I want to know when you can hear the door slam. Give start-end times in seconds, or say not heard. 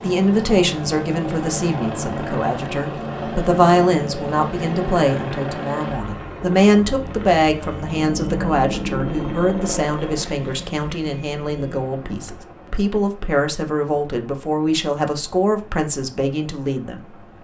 not heard.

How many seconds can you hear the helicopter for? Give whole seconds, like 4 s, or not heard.
17 s.